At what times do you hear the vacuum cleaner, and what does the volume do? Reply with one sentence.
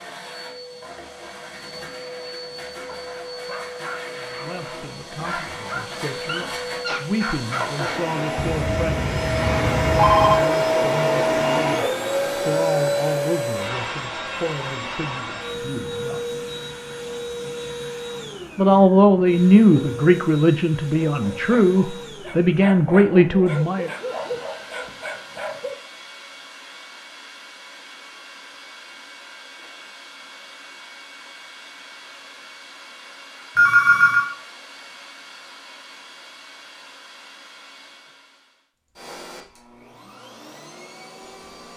The vacuum cleaner can be heard from 0.0 to 41.7 s, getting louder then quieter.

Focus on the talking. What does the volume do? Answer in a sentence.
The loudness of the talking goes up.